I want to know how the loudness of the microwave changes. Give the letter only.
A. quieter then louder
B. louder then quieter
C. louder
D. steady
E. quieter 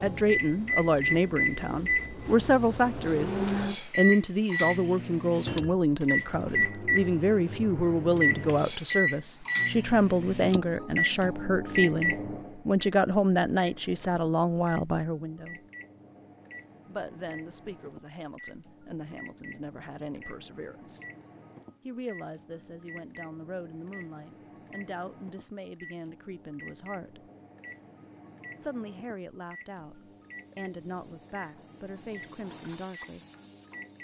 E.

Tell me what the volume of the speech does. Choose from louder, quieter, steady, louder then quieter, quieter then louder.
quieter.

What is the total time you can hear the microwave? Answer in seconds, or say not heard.
34 s.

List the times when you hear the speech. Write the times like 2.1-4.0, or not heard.
0.0-15.7, 16.9-21.1, 21.9-27.3, 28.6-33.2.